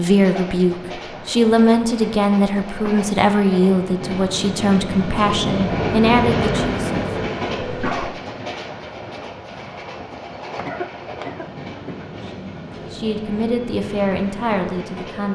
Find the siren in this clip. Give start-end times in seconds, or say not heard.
not heard.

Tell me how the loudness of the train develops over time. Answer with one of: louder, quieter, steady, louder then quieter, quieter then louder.
louder then quieter.